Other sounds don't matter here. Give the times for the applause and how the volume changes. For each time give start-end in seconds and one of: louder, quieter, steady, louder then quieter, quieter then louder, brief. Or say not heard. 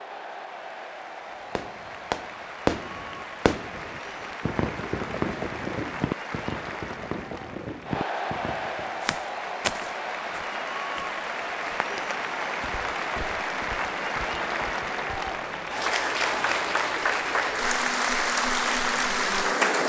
0.0-19.8 louder.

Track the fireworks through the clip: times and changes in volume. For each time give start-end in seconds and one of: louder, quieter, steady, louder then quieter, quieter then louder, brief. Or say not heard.
1.6-9.1 quieter.